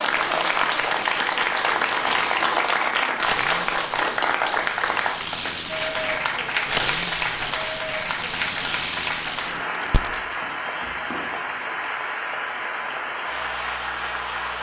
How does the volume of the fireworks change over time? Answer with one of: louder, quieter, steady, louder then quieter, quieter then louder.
louder.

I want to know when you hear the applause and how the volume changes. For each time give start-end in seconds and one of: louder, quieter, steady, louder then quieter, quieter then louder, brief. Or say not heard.
0.0-14.5 quieter.